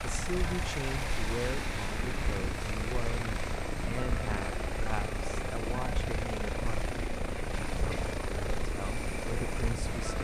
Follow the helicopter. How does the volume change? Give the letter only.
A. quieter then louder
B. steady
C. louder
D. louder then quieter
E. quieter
B.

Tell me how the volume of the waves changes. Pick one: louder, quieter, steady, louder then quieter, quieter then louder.
steady.